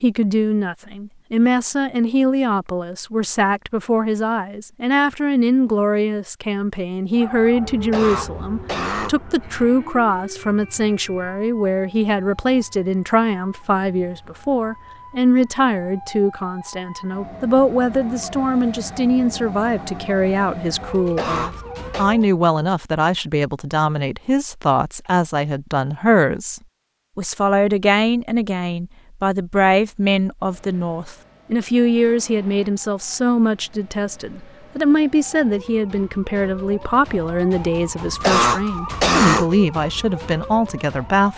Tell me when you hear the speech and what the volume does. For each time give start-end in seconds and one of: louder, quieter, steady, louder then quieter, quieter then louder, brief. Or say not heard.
0.0-41.3 steady.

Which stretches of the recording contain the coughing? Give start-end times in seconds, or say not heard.
7.7-9.2, 20.9-22.1, 38.0-39.5.